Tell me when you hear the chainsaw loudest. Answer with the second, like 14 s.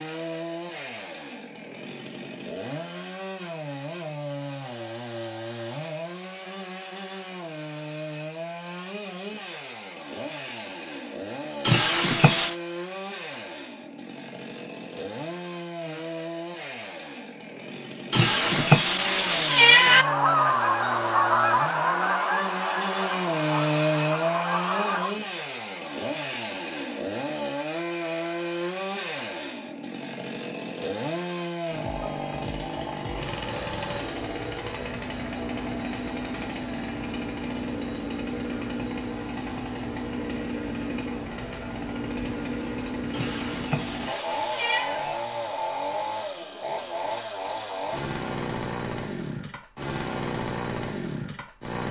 24 s.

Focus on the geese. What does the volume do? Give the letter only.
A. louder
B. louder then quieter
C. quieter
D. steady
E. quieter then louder
C.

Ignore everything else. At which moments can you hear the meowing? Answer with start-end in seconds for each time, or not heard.
11.7-12.6, 18.1-20.1, 43.1-45.0.